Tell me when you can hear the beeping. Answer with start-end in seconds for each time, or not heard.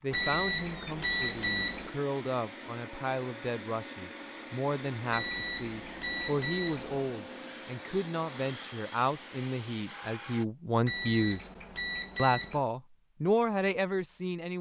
0.1-1.9, 5.1-7.1, 10.8-12.7.